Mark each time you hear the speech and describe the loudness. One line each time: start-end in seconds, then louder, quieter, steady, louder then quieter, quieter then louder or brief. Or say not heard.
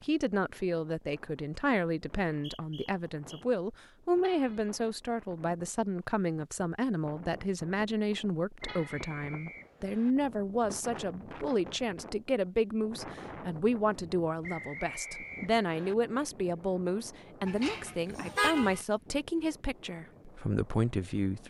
0.0-21.4 steady.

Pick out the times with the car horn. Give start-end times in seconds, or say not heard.
4.2-4.7, 8.7-9.3, 17.4-18.9.